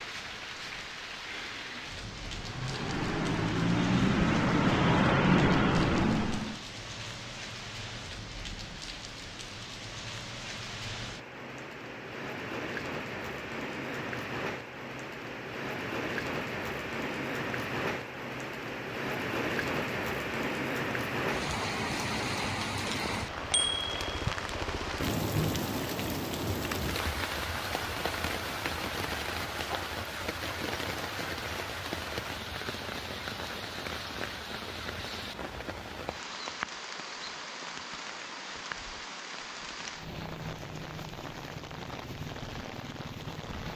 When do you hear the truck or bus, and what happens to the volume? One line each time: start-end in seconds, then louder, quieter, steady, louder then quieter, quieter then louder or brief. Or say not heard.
0.0-6.6 louder.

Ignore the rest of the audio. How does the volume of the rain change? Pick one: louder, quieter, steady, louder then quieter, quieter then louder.
louder then quieter.